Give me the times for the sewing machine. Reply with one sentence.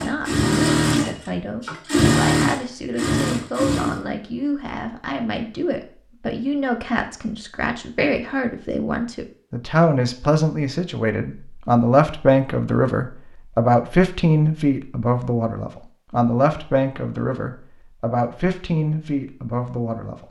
The sewing machine can be heard from 0.0 to 4.0 s.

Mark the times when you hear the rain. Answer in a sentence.
You can't hear the rain here.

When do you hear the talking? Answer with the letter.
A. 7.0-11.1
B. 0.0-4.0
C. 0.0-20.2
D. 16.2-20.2
C.